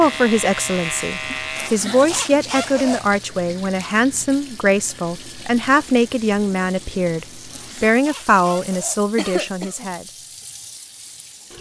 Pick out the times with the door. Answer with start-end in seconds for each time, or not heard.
not heard.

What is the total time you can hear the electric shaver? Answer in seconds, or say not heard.
2 s.